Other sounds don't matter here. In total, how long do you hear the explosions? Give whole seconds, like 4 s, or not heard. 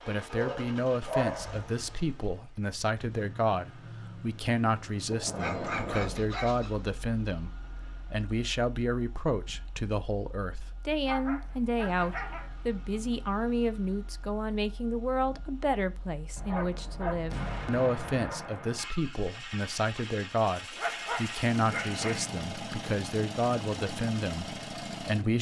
3 s.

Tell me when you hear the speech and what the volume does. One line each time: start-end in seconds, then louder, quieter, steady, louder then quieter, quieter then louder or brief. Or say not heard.
0.1-25.3 steady.